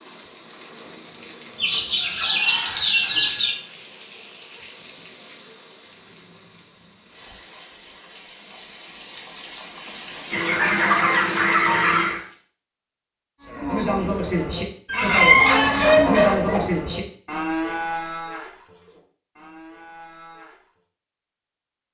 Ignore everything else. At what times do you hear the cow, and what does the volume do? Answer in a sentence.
You can hear the cow from 13.4 to 20.7 s, getting quieter.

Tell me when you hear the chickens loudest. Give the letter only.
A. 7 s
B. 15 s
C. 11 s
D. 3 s
B.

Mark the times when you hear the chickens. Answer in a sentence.
The chickens can be heard from 1.6 to 3.5 s, from 10.3 to 12.2 s and from 14.8 to 16.7 s.